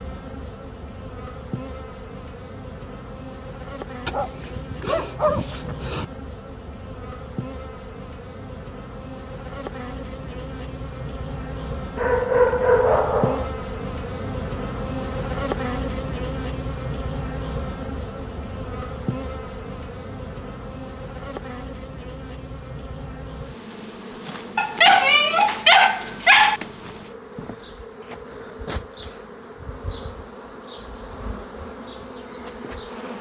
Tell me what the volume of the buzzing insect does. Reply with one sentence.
The volume of the buzzing insect goes up, then down.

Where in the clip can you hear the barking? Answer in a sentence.
The barking can be heard from 4.0 to 6.0 s, from 11.9 to 13.5 s and from 24.6 to 26.6 s.